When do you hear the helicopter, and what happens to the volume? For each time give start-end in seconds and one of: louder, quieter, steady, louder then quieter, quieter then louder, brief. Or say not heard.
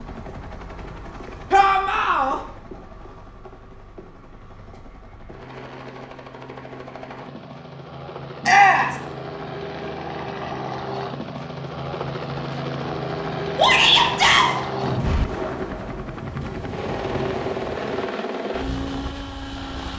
0.0-19.9 louder.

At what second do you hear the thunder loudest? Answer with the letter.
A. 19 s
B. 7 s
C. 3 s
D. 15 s
D.